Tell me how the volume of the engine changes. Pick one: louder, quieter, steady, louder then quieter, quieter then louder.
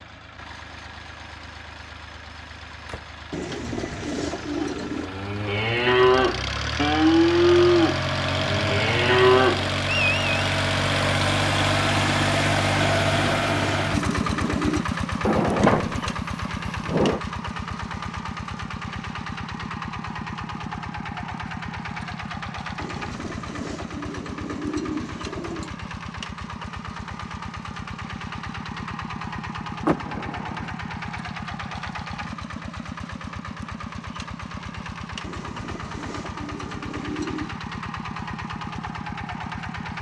louder then quieter.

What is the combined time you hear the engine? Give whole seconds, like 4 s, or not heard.
40 s.